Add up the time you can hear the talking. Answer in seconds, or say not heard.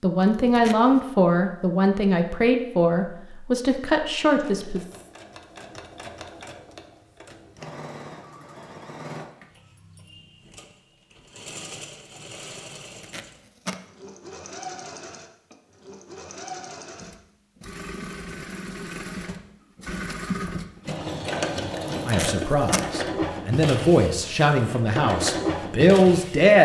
9 s.